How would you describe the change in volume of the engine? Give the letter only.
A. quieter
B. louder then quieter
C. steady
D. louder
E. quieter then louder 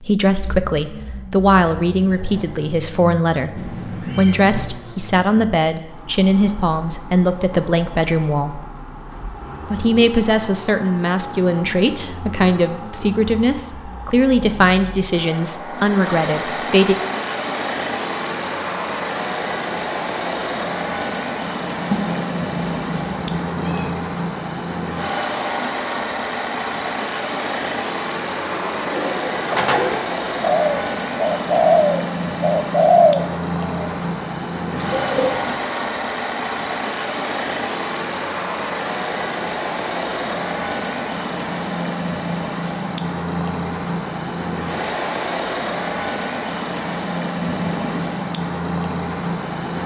D.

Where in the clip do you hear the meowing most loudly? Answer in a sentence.
The volume of the meowing peaks at 22 seconds.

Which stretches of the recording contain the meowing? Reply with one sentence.
The meowing can be heard from 3.5 to 4.8 s, from 21.9 to 23.9 s and from 47.4 to 48.2 s.